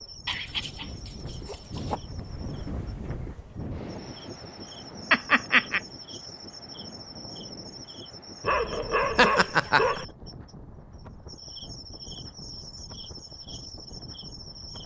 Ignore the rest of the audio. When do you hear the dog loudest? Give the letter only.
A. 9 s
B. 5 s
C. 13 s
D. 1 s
A.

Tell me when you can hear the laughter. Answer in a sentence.
The laughter can be heard from 5.1 to 5.8 s and from 9.2 to 10.1 s.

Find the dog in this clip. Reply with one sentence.
You can hear the dog from 0.2 to 2.0 s and from 8.4 to 10.1 s.